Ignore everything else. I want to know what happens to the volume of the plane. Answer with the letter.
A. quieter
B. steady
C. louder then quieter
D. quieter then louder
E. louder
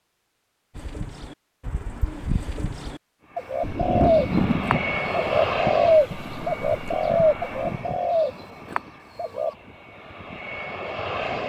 D.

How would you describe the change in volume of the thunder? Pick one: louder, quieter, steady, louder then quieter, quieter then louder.
quieter.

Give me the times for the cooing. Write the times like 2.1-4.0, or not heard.
0.8-9.6.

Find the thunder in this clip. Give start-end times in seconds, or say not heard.
3.6-8.0.